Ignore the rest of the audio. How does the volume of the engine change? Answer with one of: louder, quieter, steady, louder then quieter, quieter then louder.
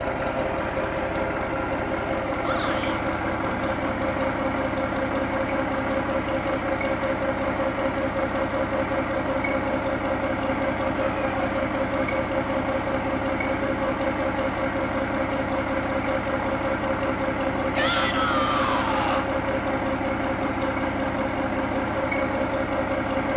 steady.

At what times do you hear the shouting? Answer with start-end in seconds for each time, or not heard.
2.4-3.0, 11.1-11.5, 17.8-19.2.